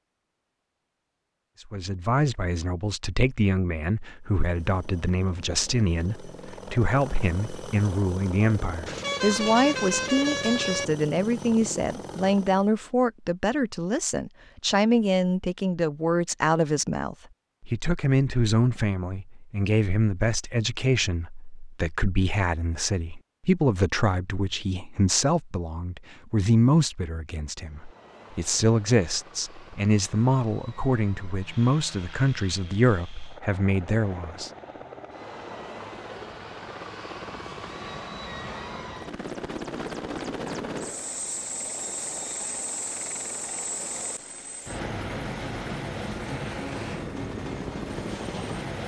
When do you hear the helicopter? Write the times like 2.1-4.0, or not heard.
4.2-12.8, 27.6-48.8.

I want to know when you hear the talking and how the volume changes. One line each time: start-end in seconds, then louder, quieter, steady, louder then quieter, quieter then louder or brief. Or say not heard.
1.7-34.5 steady.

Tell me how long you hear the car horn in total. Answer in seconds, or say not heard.
2 s.